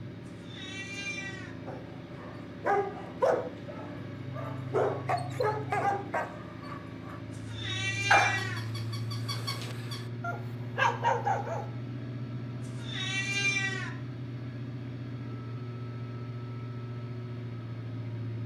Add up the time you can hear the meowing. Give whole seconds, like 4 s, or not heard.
4 s.